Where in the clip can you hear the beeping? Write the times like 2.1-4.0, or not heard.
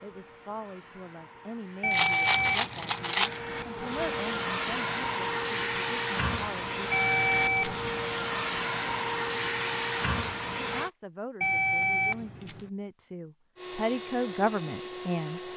1.8-3.1, 6.9-8.2, 11.4-12.7.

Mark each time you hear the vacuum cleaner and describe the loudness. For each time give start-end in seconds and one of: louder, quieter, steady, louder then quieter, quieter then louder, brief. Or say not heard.
0.0-10.9 louder
13.6-15.5 brief.